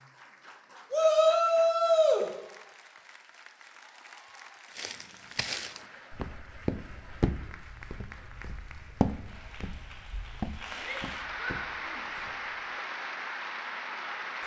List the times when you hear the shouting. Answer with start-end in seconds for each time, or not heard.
0.9-2.2, 10.8-12.1.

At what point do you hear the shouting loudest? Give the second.
1 s.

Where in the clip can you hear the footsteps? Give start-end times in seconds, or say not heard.
4.8-12.6.